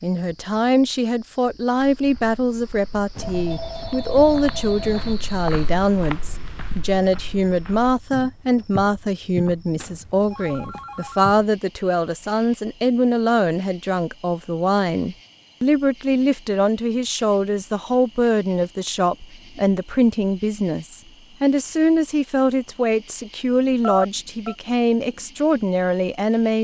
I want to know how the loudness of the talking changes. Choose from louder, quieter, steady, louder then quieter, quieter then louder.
steady.